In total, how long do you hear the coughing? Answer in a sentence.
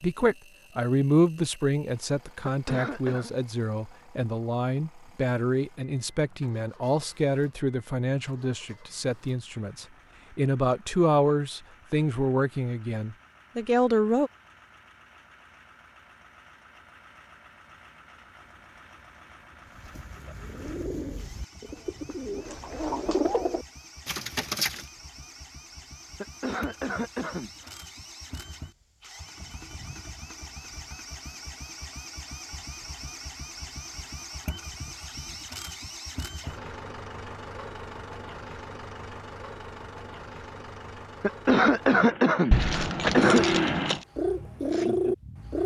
The coughing can be heard for 5 seconds in total.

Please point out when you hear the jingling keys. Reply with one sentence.
You can hear the jingling keys from 42.5 to 44.0 s.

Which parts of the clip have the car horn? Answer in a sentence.
You can't hear the car horn here.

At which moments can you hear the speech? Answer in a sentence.
The speech can be heard from 0.0 to 14.3 s.